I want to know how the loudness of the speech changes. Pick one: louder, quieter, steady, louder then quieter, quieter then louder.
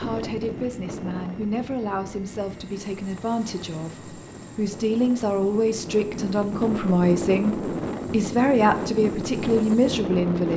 louder.